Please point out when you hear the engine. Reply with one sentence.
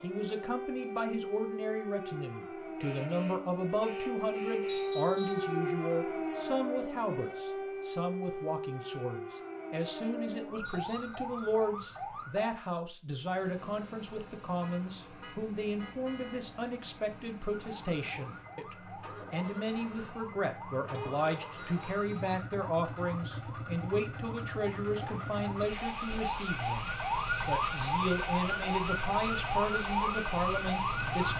The engine can be heard from 13.2 to 31.3 s.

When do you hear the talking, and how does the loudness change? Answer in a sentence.
You can hear the talking from 0.0 to 31.3 s, at a steady volume.